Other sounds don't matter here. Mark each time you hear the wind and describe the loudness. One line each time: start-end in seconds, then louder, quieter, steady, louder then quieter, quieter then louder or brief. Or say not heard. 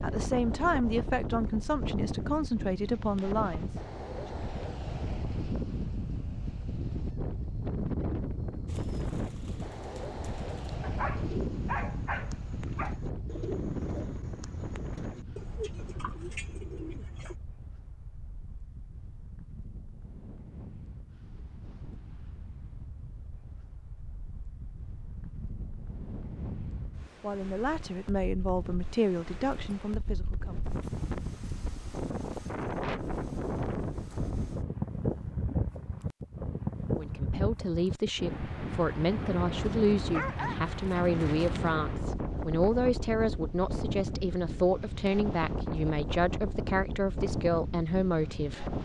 0.0-48.8 quieter then louder.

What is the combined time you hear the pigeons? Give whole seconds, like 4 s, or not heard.
9 s.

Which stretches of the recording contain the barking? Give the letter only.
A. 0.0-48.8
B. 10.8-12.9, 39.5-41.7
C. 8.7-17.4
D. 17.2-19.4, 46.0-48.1
B.